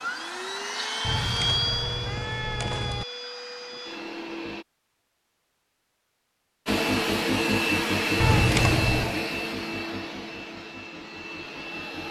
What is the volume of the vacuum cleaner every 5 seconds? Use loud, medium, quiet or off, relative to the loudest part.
medium, loud, quiet.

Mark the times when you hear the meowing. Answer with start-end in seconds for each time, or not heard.
1.0-3.0, 8.2-9.2.